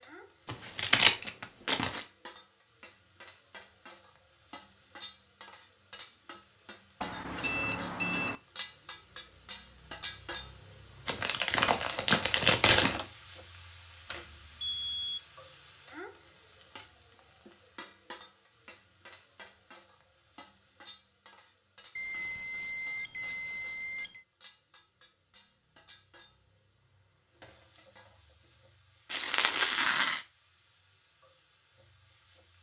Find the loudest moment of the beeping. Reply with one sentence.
The volume of the beeping peaks at 8 seconds.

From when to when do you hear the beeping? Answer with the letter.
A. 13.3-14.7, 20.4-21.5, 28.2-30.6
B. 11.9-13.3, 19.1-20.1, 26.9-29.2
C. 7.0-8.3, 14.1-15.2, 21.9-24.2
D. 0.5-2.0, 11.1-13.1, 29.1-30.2
C.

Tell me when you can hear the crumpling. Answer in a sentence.
The crumpling can be heard from 0.5 to 2.0 s, from 11.1 to 13.1 s and from 29.1 to 30.2 s.